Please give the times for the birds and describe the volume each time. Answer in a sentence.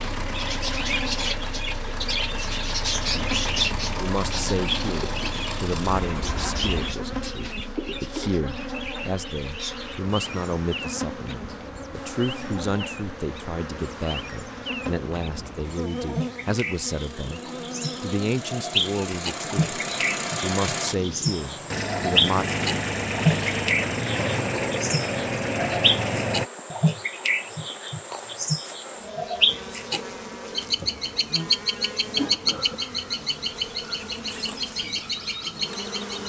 You can hear the birds from 0.2 to 36.2 s, getting quieter then louder.